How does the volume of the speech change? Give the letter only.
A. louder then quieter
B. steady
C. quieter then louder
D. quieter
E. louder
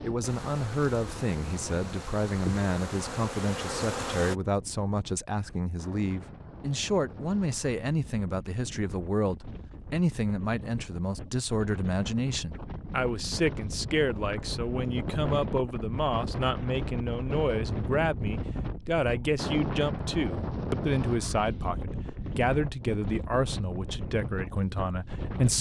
B.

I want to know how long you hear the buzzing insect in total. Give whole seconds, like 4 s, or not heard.
4 s.